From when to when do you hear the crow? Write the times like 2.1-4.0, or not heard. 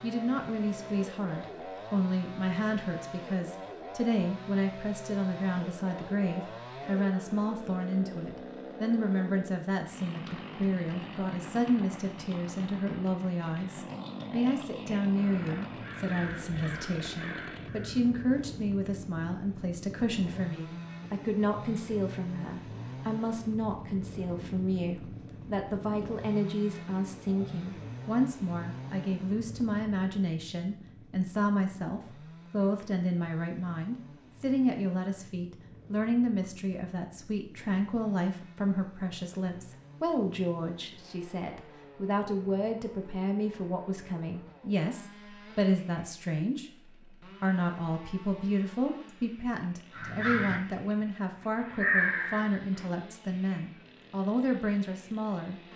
15.2-18.2, 49.9-52.9.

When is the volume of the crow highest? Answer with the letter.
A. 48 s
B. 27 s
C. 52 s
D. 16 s
C.